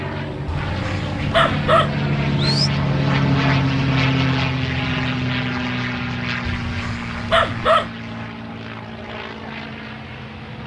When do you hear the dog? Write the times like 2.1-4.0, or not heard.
0.5-2.7, 6.5-7.9.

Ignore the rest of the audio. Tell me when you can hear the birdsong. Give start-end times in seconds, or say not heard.
not heard.